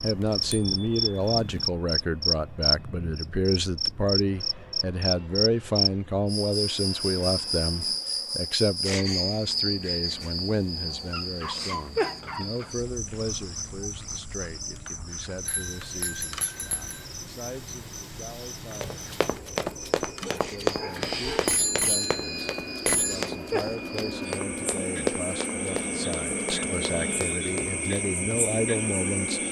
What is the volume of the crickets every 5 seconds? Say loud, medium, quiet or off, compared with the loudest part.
loud, loud, medium, quiet, medium, medium.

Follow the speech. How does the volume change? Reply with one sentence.
The loudness of the speech goes down, then up.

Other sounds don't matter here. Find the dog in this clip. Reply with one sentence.
The dog can be heard from 11.1 to 12.8 s and from 20.2 to 21.6 s.